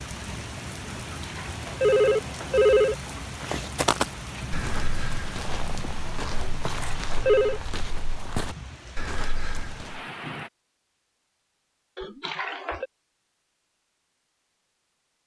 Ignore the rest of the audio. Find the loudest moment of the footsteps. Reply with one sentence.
The volume of the footsteps peaks at 4 seconds.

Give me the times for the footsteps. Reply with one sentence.
The footsteps can be heard from 3.4 to 10.0 s.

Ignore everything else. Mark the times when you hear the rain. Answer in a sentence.
The rain can be heard from 0.0 to 10.5 s.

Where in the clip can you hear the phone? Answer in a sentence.
The phone can be heard from 0.9 to 3.0 s, from 6.4 to 7.6 s and from 11.9 to 12.8 s.